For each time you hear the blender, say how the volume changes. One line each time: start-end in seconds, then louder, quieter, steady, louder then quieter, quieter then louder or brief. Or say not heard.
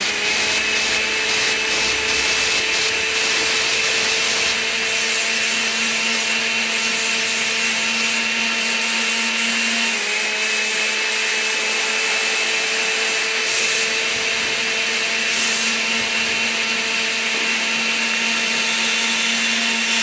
0.0-19.9 steady.